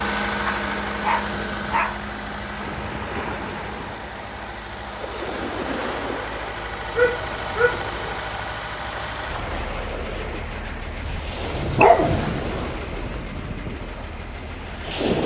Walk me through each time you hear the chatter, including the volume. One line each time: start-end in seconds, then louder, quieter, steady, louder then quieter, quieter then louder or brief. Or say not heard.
not heard.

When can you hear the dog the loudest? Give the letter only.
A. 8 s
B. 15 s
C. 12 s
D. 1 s
C.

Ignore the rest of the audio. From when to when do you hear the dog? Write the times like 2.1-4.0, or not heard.
0.5-2.0, 7.0-7.9, 11.1-13.1.